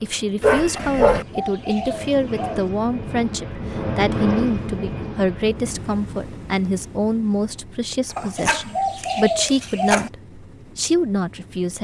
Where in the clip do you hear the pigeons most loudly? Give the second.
9 s.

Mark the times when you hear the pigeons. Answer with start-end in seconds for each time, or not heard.
0.8-2.7, 8.2-10.1.